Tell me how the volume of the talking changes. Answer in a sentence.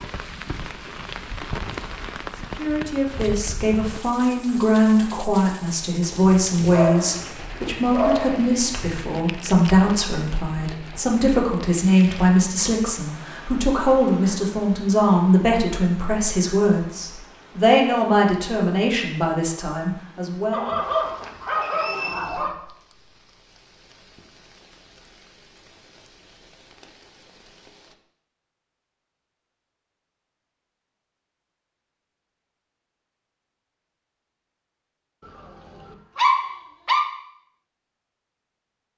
The loudness of the talking stays about the same.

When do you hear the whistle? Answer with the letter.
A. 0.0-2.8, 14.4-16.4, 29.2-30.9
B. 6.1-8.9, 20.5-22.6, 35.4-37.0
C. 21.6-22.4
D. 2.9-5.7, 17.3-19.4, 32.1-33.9
C.